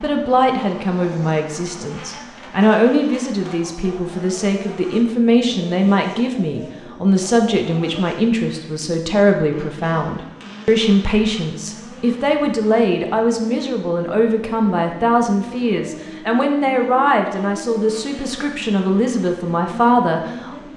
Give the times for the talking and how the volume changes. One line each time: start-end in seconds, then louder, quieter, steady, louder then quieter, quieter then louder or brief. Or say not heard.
0.0-20.6 steady.